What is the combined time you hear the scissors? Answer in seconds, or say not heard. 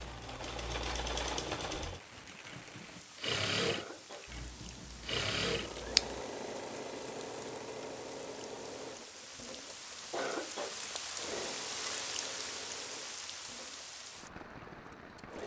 2 s.